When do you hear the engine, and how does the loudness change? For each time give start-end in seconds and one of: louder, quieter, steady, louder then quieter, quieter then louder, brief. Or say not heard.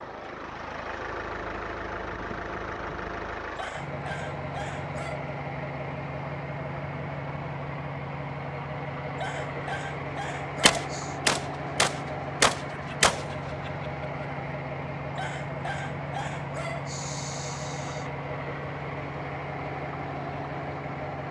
0.0-21.2 steady.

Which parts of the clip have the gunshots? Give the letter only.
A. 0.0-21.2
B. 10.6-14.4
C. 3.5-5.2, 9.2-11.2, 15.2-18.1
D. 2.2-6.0
B.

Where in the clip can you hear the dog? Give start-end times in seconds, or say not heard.
3.5-5.2, 9.2-11.2, 15.2-18.1.